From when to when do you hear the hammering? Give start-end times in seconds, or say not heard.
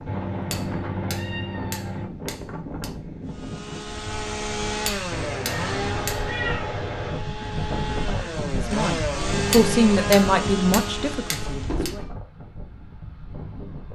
0.3-2.9, 4.7-6.2, 9.3-11.9.